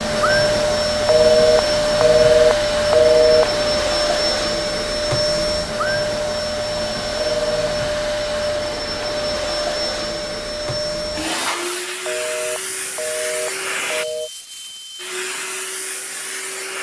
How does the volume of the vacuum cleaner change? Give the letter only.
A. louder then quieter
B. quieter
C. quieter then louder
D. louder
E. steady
B.